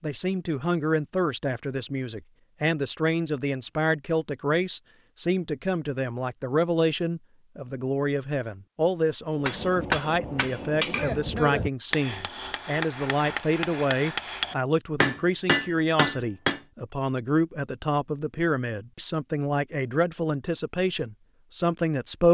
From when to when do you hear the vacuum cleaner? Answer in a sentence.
The vacuum cleaner can't be heard in this clip.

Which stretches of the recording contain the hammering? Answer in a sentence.
The hammering can be heard from 9.3 to 16.6 s.